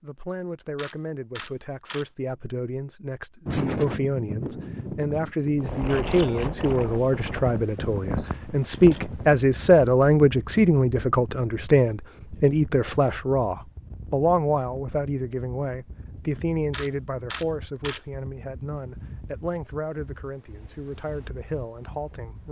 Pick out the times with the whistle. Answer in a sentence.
The whistle can't be heard in this clip.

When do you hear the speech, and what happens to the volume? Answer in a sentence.
The speech can be heard from 0.0 to 22.4 s, getting louder then quieter.